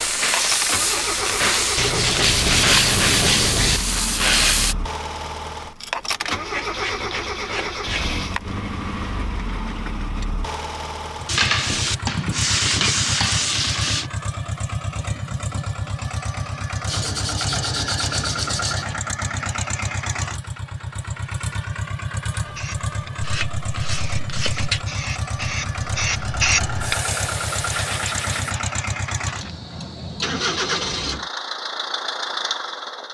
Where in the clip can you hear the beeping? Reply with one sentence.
You can't hear the beeping here.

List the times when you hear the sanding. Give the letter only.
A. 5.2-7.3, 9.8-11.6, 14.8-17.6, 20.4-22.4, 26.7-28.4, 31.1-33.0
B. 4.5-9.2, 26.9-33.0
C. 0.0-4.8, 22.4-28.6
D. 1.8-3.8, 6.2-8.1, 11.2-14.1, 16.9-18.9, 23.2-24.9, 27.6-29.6
D.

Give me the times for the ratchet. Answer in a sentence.
You can't hear the ratchet here.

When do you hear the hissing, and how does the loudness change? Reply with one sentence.
You can hear the hissing from 0.0 to 4.8 s, at a steady volume; and from 22.4 to 28.6 s, getting louder then quieter.